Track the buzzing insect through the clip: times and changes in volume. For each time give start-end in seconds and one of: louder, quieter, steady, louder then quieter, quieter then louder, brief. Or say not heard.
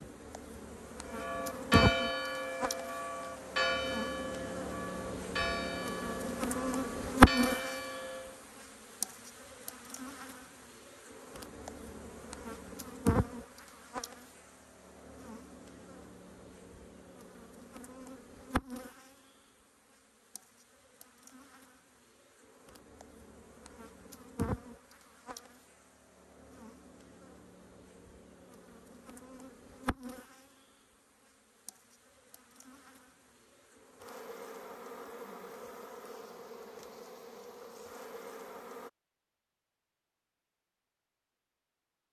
0.0-38.9 quieter.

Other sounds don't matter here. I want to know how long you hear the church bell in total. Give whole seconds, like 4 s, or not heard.
7 s.